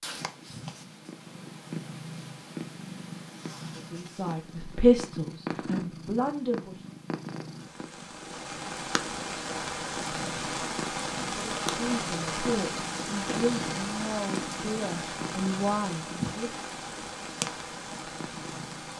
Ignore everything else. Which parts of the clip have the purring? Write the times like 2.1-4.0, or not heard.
0.0-18.9.